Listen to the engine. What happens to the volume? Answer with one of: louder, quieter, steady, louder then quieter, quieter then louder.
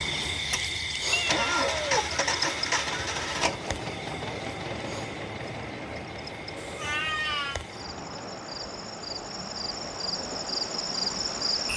quieter.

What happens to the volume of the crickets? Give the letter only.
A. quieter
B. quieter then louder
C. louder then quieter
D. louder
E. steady
B.